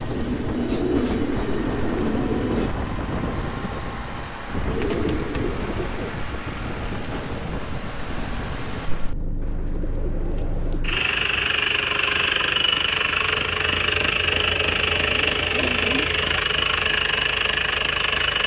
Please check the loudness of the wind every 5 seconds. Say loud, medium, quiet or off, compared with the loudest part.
loud, loud, off, off.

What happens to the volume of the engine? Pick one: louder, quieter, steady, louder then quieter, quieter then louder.
louder.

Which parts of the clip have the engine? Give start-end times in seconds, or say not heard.
0.0-18.4.